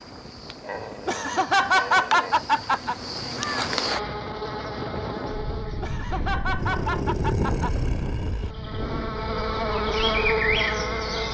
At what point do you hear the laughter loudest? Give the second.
2 s.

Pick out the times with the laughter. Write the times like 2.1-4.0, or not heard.
1.1-3.0, 5.8-7.7.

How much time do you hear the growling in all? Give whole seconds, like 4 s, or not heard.
4 s.